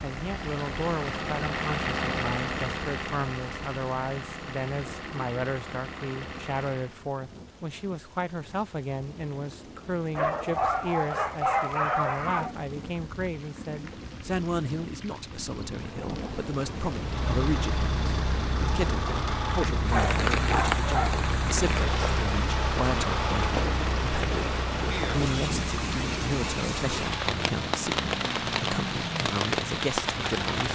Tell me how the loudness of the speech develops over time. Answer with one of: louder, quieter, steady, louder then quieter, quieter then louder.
steady.